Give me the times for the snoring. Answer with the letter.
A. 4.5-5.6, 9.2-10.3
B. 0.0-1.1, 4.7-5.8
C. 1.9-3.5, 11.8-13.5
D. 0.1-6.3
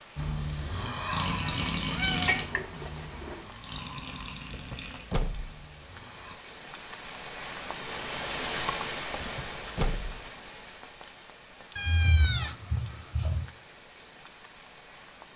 D.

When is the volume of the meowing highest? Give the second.
12 s.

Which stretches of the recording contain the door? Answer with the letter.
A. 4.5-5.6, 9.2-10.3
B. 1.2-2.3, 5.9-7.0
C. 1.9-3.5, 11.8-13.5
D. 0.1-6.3
A.